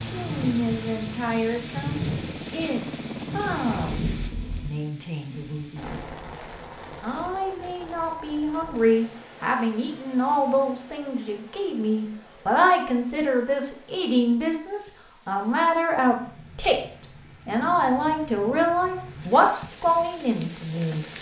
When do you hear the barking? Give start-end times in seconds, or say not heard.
not heard.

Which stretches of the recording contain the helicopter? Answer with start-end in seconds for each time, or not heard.
0.0-4.7.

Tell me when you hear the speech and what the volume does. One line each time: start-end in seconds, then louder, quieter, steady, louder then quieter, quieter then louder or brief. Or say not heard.
0.1-5.9 quieter
7.0-21.1 steady.